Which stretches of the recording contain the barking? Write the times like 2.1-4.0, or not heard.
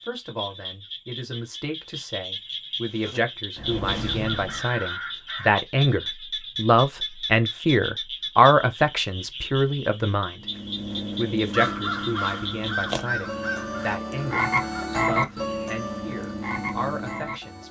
not heard.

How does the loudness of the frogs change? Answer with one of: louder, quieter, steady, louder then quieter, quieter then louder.
louder.